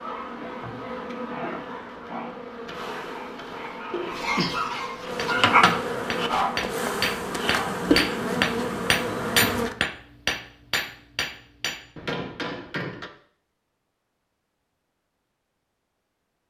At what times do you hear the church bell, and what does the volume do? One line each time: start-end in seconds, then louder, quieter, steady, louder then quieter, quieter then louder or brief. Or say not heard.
not heard.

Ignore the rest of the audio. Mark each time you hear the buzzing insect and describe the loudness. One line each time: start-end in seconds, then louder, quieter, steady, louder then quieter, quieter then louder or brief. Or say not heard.
0.0-9.8 louder.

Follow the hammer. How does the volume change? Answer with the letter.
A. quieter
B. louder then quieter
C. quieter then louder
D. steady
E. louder
B.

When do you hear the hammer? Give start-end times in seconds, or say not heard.
5.2-13.1.